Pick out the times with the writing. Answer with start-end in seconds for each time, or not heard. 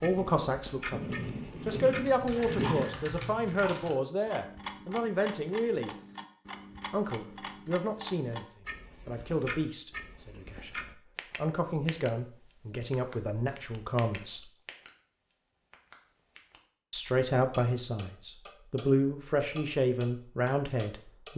0.0-2.9.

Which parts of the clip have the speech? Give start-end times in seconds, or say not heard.
0.0-5.9, 6.9-14.5, 16.9-21.3.